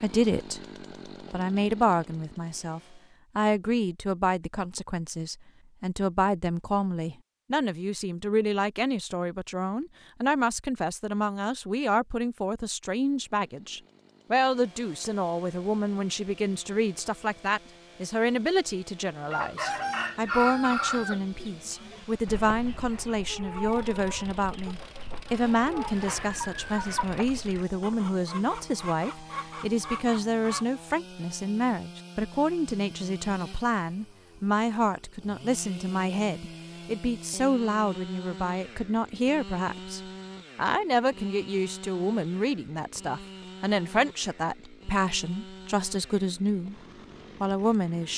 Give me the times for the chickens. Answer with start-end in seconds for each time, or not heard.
19.2-30.6.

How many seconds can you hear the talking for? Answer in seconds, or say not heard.
47 s.